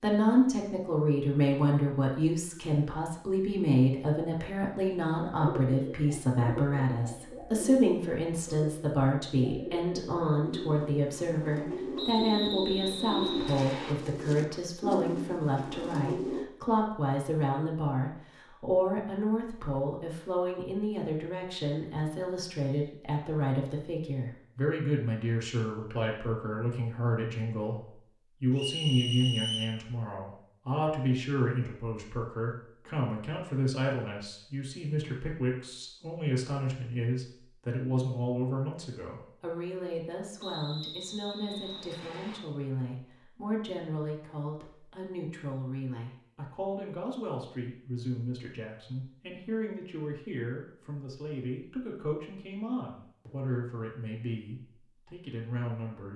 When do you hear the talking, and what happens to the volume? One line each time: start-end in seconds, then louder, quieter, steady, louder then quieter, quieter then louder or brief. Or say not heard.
0.0-56.1 quieter.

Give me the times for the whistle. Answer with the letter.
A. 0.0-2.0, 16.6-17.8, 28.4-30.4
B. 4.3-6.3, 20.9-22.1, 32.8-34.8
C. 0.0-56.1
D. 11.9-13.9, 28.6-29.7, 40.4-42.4
D.